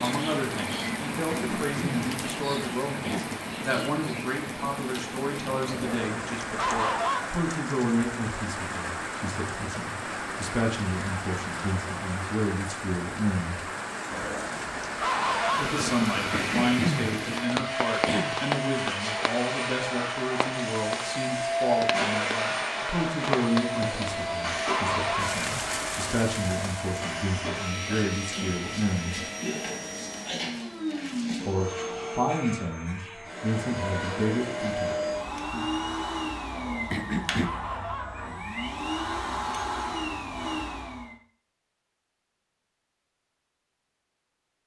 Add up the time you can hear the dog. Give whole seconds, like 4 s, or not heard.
7 s.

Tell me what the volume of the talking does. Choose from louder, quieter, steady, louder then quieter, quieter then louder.
steady.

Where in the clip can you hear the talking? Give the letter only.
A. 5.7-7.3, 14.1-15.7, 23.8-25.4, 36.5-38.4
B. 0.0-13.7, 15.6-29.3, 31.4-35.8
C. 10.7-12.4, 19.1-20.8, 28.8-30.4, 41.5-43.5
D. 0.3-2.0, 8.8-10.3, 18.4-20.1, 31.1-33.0
B.